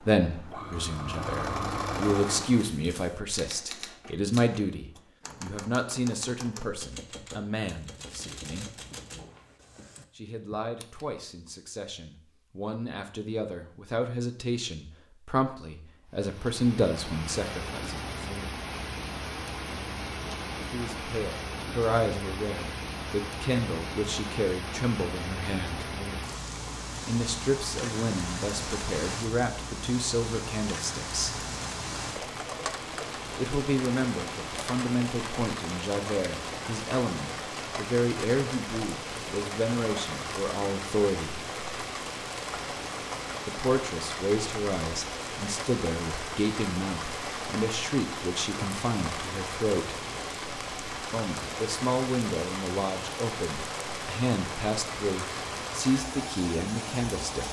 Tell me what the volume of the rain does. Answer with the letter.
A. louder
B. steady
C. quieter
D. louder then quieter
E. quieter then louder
B.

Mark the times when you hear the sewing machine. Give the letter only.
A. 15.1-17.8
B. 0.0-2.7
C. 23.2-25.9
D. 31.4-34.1
B.